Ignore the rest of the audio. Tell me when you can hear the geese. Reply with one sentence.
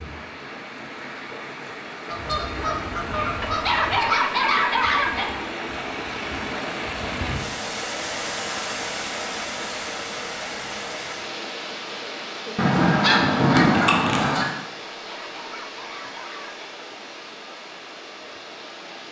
You can hear the geese from 2.0 to 4.0 s and from 12.6 to 14.5 s.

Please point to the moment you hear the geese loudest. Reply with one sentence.
The volume of the geese peaks at 14 seconds.